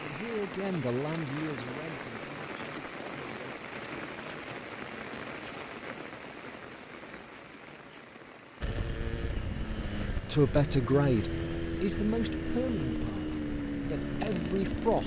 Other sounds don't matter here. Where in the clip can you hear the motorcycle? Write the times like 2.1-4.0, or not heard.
8.6-15.0.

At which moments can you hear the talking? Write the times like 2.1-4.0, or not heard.
0.0-3.6, 10.2-15.0.